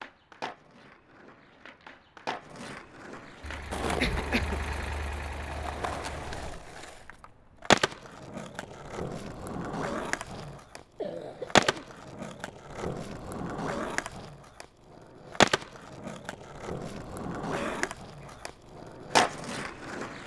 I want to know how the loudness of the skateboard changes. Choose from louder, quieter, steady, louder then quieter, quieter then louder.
louder.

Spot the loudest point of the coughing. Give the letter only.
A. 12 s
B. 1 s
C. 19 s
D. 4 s
D.